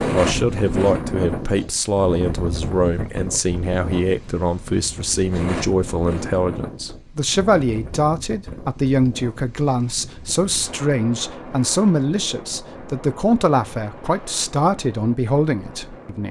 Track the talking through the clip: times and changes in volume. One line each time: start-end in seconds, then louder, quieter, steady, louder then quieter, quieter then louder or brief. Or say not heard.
0.1-16.2 steady.